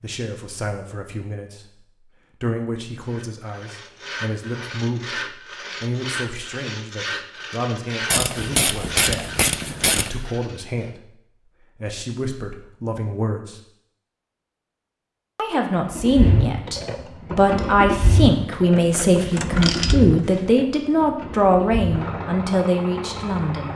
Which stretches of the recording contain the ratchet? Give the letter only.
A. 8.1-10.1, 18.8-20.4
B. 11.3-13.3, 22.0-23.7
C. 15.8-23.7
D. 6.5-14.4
A.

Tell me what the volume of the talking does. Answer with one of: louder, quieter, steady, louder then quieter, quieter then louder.
louder.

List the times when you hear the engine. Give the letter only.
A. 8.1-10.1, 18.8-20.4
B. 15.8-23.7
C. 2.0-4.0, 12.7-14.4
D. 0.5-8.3
B.